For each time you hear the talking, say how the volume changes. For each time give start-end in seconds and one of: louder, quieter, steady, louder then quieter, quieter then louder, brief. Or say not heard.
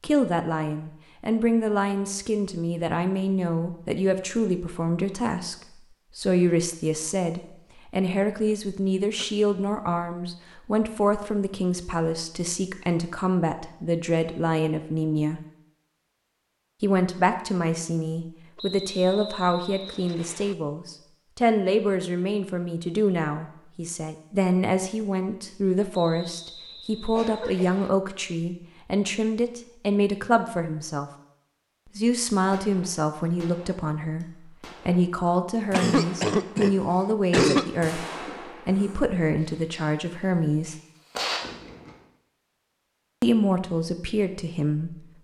0.0-15.4 steady
16.8-31.1 steady
31.9-40.8 steady
43.2-45.0 brief.